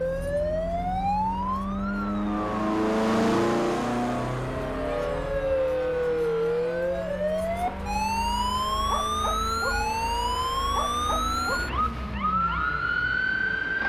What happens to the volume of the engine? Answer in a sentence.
The loudness of the engine goes down.